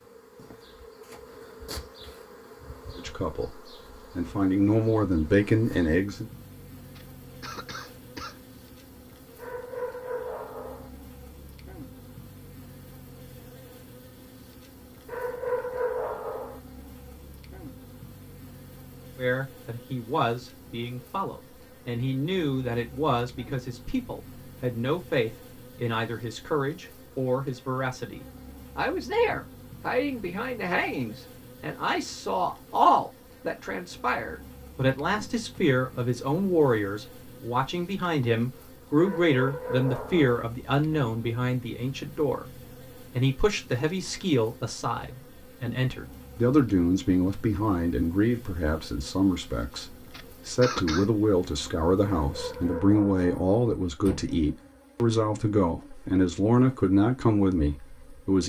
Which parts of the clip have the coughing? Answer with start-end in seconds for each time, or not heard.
7.0-8.4, 50.1-51.1.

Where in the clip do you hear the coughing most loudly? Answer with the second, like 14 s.
51 s.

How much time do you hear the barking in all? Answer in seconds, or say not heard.
6 s.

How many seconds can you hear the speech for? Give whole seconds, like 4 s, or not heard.
42 s.